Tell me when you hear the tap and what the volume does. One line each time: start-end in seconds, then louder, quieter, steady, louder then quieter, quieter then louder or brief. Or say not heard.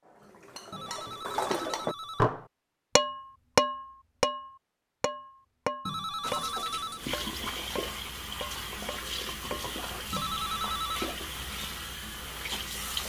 6.2-13.0 steady.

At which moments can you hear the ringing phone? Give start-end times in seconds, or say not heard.
0.7-2.3, 5.8-7.0, 10.1-11.2.